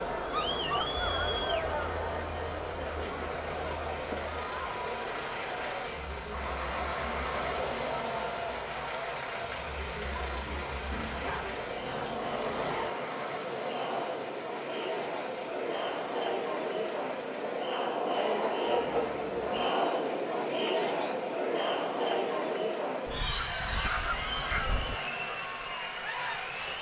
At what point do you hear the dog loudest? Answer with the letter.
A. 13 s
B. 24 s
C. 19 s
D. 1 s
C.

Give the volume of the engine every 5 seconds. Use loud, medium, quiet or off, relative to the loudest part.
medium, loud, loud, medium, medium, medium.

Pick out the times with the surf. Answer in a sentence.
You can't hear the surf here.